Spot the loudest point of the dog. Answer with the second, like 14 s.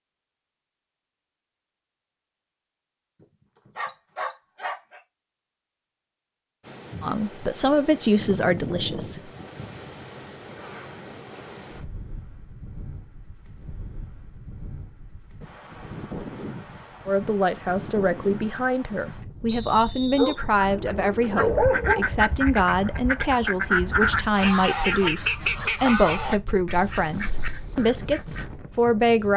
22 s.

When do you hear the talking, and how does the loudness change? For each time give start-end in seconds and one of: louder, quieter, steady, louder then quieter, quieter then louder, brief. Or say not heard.
7.0-9.2 brief
17.1-29.3 steady.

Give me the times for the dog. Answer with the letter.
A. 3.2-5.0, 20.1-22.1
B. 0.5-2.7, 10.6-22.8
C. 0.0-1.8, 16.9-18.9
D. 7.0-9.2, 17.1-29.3
A.